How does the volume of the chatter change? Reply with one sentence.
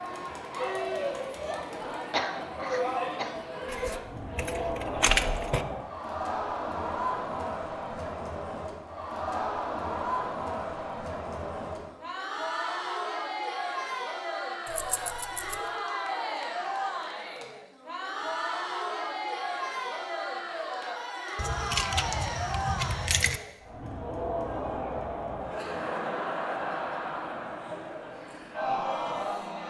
The volume of the chatter stays about the same.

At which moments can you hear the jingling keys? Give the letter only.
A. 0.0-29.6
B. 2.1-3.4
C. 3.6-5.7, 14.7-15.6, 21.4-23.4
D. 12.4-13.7
C.